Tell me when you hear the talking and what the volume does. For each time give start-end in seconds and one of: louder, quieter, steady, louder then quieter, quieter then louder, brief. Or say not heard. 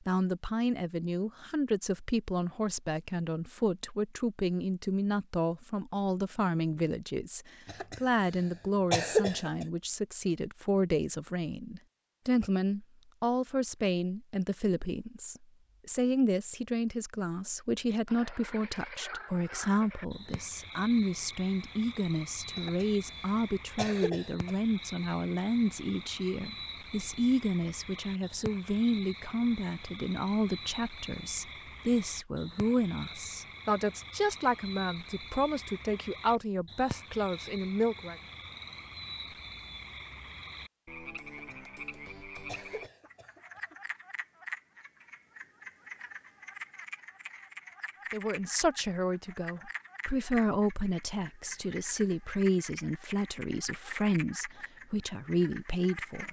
0.1-38.1 steady
48.1-56.2 steady.